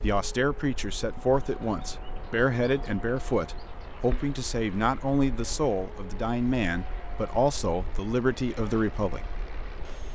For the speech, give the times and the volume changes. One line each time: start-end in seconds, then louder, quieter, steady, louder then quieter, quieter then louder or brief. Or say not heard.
0.0-9.2 steady.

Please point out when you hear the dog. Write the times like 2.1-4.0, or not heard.
not heard.